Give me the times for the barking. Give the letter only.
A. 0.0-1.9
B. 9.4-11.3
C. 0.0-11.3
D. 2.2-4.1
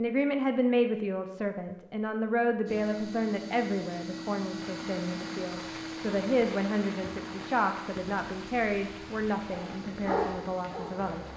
B.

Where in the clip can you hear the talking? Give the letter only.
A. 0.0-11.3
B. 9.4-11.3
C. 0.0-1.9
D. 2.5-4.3
A.